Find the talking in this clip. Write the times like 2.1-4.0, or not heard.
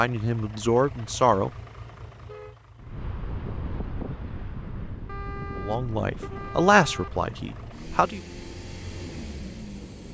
0.0-1.5, 5.5-8.2.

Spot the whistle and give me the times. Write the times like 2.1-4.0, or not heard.
not heard.